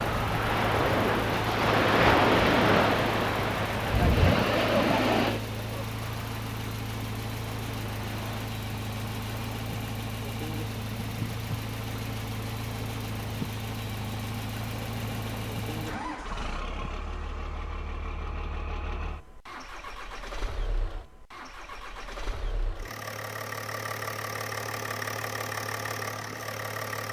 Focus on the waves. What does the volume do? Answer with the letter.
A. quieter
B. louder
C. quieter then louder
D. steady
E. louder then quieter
A.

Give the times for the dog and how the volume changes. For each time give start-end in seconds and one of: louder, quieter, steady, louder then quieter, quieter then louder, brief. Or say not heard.
not heard.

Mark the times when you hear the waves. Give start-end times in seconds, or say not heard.
0.0-16.9.